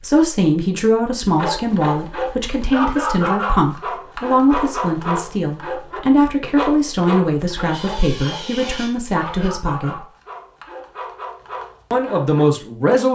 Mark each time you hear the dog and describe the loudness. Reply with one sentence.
You can hear the dog from 1.2 to 12.4 s, getting quieter.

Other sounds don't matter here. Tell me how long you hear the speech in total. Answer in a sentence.
The speech can be heard for 11 seconds in total.